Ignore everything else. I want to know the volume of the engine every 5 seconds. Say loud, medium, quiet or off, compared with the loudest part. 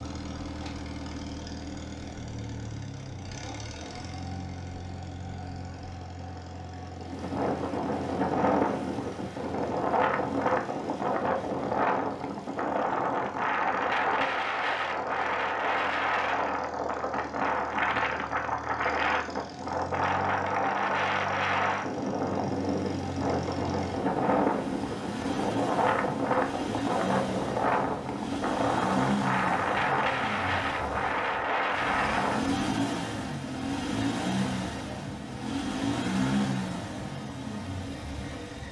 medium, quiet, quiet, quiet, medium, loud, loud, loud.